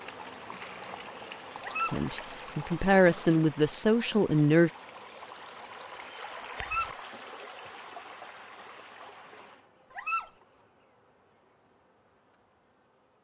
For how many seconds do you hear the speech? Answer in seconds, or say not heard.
3 s.